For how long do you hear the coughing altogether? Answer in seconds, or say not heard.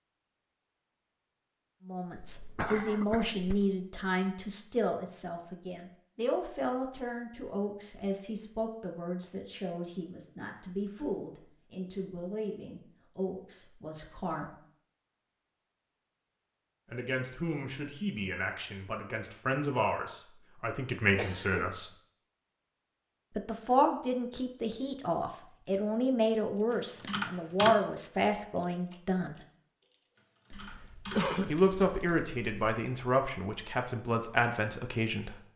3 s.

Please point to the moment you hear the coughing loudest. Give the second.
31 s.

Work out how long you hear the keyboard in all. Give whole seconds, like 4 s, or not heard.
4 s.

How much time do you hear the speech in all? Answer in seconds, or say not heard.
28 s.